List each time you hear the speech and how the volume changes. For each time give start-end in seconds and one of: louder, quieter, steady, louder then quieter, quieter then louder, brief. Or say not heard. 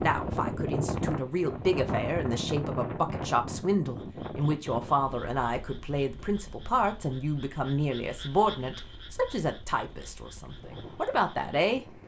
0.0-11.8 steady.